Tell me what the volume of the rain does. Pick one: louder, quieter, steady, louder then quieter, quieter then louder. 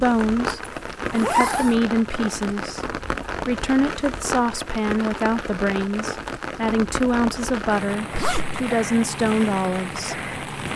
steady.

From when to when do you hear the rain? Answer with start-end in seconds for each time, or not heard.
0.0-10.7.